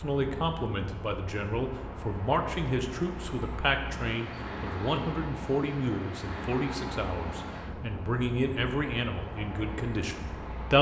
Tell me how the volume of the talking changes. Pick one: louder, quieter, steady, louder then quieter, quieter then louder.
steady.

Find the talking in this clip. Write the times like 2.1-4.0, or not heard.
0.0-10.7.